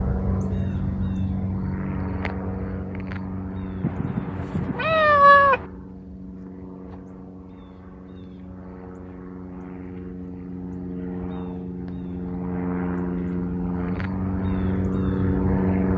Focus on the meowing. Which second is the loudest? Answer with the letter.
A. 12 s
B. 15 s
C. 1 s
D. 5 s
D.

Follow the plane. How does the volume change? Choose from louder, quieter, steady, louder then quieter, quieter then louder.
quieter then louder.